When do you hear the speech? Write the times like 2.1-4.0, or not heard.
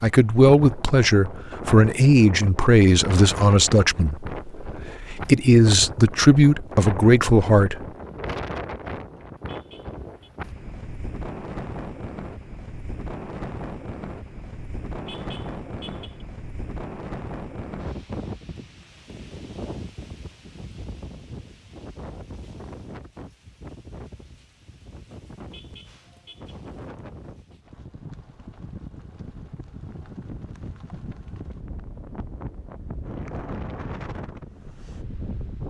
0.0-7.8.